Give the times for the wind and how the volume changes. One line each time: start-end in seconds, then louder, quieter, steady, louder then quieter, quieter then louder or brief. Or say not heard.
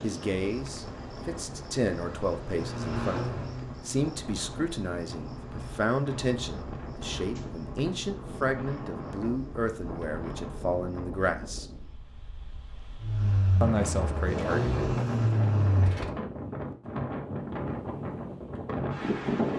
0.2-19.5 louder.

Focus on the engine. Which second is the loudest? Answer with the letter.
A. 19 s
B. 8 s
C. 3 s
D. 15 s
D.